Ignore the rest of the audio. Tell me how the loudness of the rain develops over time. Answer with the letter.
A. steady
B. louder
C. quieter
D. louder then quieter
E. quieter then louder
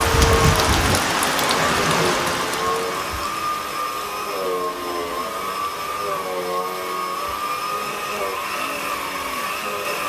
C.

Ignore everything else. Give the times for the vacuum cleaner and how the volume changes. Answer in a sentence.
The vacuum cleaner can be heard from 0.0 to 10.0 s, at a steady volume.